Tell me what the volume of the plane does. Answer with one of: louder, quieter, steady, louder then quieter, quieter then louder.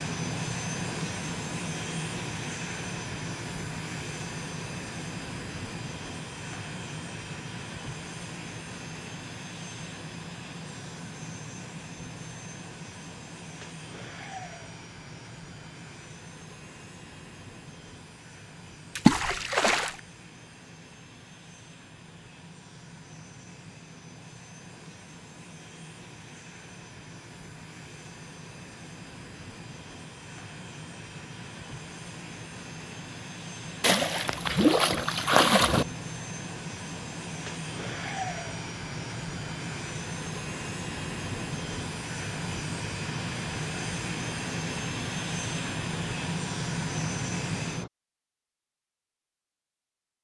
quieter then louder.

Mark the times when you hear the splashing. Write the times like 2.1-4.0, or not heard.
18.9-19.9, 33.8-35.9.